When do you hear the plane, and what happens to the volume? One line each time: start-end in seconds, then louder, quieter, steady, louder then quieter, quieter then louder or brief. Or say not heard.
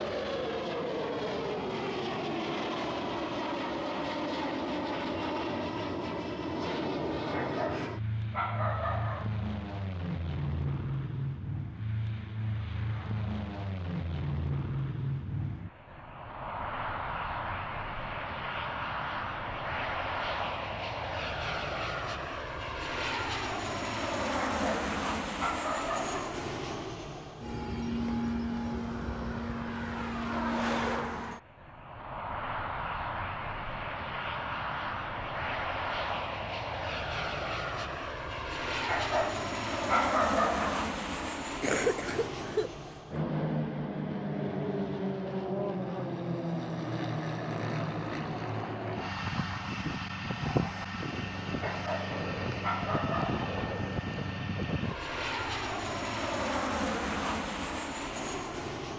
0.0-58.9 steady.